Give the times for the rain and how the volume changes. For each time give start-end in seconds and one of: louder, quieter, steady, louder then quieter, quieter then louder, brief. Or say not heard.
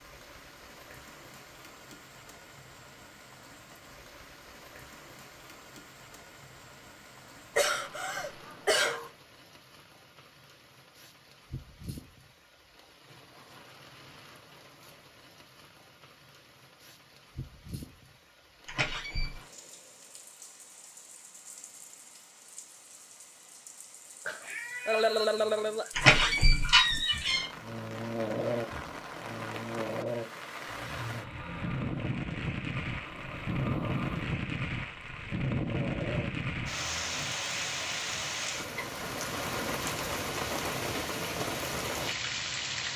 0.0-42.9 louder.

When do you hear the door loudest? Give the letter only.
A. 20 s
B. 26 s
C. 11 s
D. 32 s
B.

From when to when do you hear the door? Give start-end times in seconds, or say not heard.
18.6-19.4, 25.9-27.4.